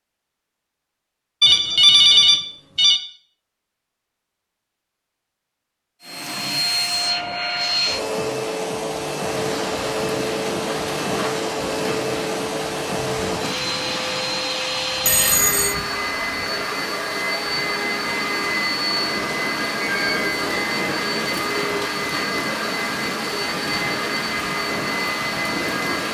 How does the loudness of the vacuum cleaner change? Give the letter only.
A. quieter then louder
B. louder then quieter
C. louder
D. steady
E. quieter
D.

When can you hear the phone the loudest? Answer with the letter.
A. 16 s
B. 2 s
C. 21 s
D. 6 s
B.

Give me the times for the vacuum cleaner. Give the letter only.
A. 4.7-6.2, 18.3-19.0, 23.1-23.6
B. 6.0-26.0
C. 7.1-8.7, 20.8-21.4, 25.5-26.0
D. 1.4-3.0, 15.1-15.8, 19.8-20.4
B.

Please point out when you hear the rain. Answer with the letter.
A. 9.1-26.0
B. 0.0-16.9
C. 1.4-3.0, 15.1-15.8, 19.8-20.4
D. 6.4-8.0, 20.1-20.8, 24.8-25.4
A.